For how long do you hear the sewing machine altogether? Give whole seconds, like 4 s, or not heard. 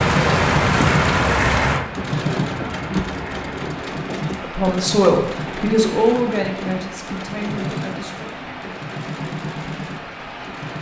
11 s.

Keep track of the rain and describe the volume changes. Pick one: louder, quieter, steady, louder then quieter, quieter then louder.
quieter.